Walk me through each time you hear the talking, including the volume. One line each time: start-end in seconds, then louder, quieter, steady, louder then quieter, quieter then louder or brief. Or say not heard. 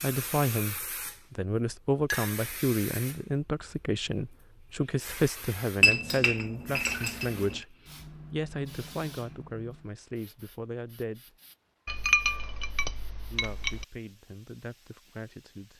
0.0-11.2 quieter
13.3-15.7 brief.